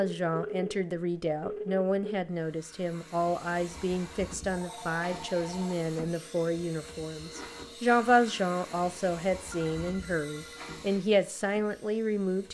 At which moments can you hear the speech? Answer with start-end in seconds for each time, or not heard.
0.0-12.4.